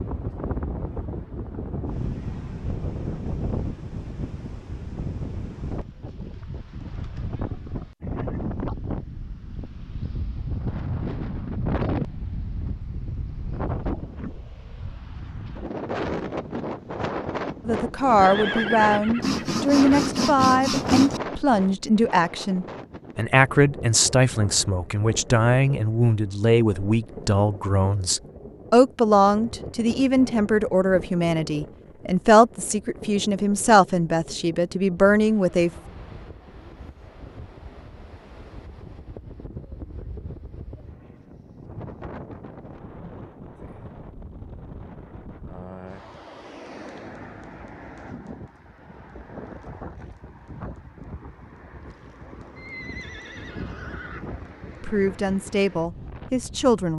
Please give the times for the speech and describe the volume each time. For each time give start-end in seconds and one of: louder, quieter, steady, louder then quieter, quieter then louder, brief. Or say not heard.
17.6-35.7 steady
54.8-56.9 brief.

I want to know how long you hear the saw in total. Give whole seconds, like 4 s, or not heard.
2 s.